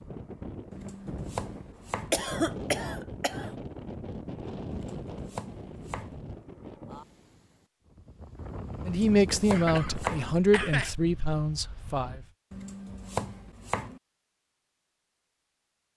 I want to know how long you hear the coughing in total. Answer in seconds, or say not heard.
3 s.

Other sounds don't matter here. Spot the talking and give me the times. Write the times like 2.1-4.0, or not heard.
8.8-12.2.